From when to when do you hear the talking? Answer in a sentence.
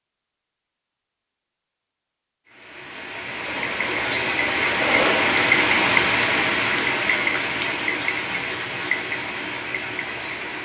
You can't hear the talking here.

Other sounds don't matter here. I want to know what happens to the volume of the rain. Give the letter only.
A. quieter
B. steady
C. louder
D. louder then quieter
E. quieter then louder
D.